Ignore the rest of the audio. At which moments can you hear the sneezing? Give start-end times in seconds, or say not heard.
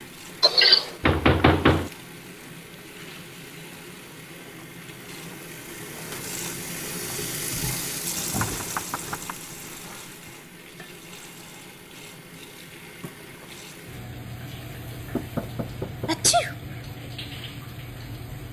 0.4-0.9, 16.1-16.5.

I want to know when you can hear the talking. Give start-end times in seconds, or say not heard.
not heard.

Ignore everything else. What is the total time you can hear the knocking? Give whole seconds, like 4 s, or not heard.
3 s.